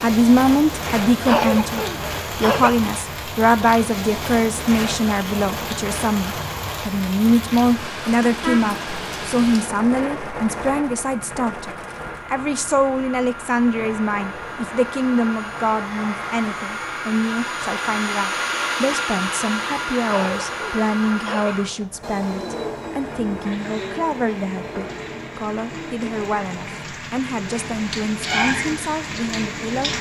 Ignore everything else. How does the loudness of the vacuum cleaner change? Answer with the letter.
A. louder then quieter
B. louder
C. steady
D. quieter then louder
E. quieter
A.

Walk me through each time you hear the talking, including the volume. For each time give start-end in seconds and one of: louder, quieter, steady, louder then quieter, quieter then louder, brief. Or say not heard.
0.0-29.9 quieter.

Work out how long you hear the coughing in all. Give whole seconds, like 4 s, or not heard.
3 s.